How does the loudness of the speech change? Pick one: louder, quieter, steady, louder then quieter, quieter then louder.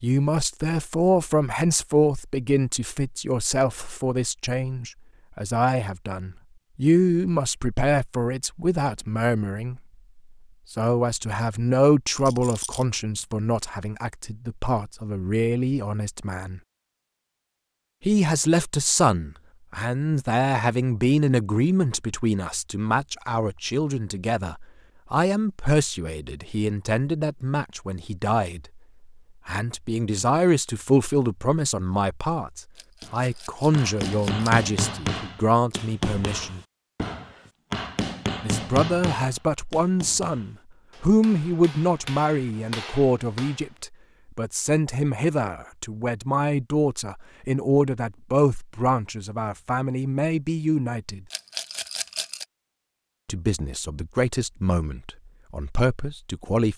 steady.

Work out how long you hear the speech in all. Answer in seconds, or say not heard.
50 s.